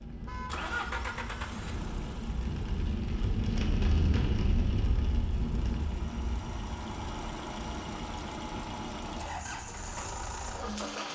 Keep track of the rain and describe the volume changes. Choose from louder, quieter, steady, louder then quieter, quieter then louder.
louder then quieter.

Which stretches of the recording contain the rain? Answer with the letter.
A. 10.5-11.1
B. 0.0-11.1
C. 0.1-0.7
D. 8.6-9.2
B.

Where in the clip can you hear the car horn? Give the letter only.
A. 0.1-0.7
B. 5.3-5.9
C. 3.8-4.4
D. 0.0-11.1
A.